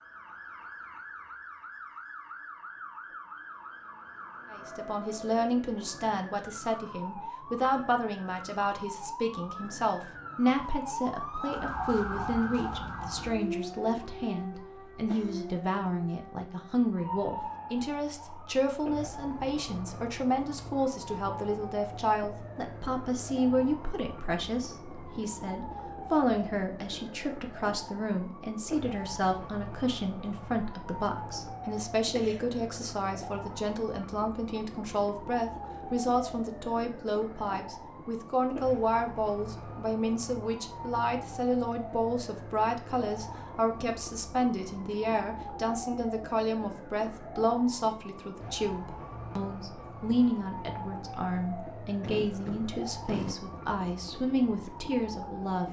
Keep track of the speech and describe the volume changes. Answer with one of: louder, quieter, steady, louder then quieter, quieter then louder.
steady.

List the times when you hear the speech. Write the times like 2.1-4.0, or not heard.
4.5-55.6.